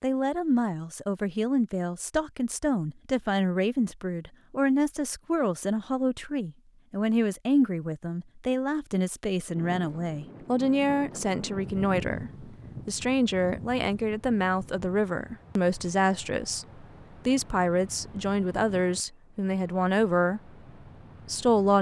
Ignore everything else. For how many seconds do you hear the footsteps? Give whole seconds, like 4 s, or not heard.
not heard.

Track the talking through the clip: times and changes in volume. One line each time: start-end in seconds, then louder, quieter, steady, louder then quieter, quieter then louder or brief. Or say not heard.
0.0-20.5 steady
21.2-21.7 brief.